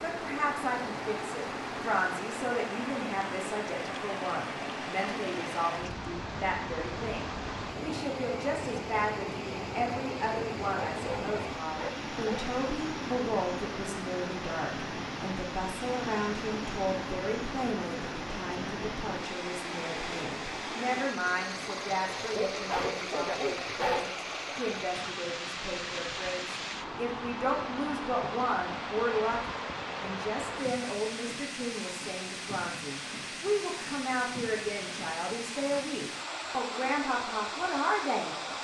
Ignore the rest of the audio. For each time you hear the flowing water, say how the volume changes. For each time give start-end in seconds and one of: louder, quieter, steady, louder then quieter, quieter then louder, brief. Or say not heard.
0.0-38.5 steady.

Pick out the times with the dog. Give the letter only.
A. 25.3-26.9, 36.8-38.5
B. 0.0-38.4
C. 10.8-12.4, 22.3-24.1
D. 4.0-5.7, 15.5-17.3
C.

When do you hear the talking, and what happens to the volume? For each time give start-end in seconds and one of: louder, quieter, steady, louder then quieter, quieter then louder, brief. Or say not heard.
0.0-38.4 steady.